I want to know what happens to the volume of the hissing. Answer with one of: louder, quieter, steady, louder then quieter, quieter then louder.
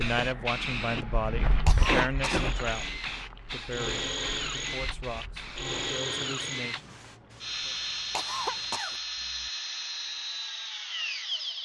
quieter.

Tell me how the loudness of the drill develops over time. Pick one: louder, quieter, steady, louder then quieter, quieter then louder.
steady.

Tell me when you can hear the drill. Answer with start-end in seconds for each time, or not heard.
2.3-11.6.